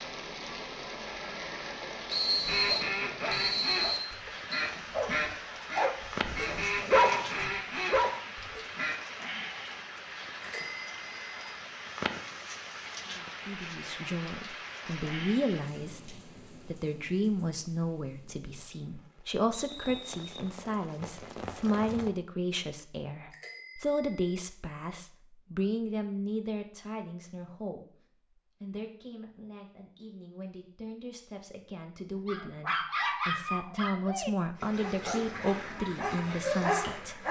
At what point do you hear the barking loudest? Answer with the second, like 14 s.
7 s.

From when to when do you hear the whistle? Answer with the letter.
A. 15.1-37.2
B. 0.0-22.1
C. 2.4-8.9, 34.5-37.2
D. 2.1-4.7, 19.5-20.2
D.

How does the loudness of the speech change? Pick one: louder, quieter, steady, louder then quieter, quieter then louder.
quieter then louder.